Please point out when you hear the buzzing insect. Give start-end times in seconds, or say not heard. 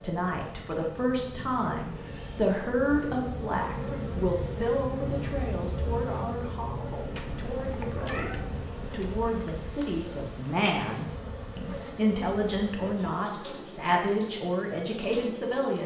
0.0-15.8.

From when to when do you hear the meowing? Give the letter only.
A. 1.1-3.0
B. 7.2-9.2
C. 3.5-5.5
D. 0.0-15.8
B.